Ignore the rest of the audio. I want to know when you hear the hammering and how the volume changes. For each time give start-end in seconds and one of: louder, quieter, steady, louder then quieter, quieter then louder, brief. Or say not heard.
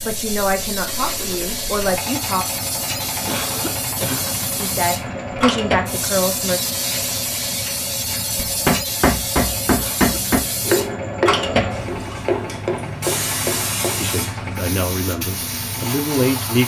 8.3-14.2 quieter.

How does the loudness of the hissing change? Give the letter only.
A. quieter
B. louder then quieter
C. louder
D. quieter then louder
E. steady
E.